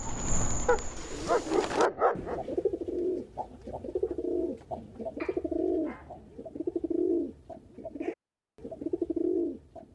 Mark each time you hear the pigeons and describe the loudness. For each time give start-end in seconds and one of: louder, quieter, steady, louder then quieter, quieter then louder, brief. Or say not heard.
0.0-9.8 louder.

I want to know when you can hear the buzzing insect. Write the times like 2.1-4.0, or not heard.
0.0-1.8.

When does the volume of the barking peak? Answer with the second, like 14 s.
2 s.